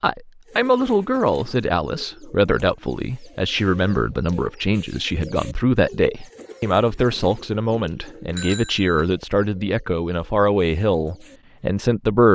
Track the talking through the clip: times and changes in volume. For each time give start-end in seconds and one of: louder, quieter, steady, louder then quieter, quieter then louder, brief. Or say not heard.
0.0-12.2 steady.